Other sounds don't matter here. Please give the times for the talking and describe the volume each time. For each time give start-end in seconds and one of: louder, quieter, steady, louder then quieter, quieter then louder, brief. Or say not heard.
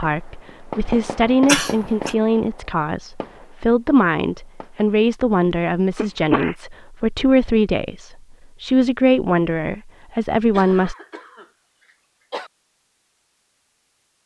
0.0-10.9 steady.